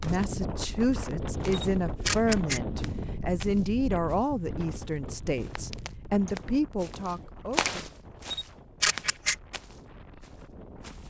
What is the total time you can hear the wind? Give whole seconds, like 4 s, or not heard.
11 s.